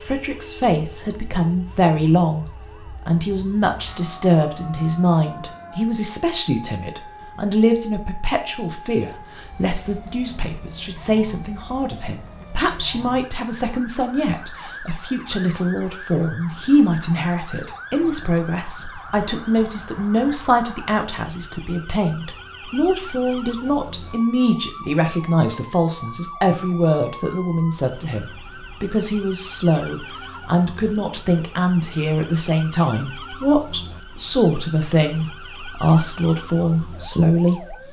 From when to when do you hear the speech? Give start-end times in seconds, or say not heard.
0.1-37.8.